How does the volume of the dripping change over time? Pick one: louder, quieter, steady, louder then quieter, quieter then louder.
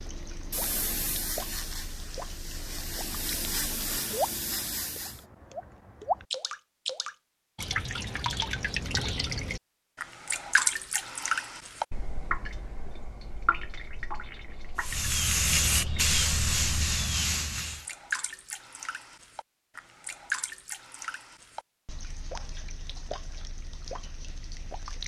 louder then quieter.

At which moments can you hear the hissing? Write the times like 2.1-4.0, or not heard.
0.0-5.2, 14.8-17.9.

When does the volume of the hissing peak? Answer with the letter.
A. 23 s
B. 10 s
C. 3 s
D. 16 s
D.